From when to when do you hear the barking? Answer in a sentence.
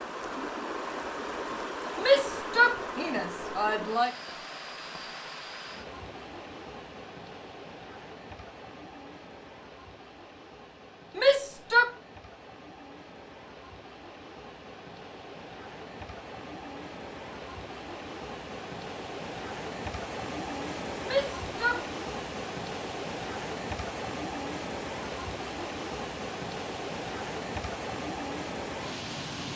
You can't hear the barking here.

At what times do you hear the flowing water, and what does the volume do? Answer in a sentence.
The flowing water can be heard from 0.0 to 29.5 s, getting quieter then louder.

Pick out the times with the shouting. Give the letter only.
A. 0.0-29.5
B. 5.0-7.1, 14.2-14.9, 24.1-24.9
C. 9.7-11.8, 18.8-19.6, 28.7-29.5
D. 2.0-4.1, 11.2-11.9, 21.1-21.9
D.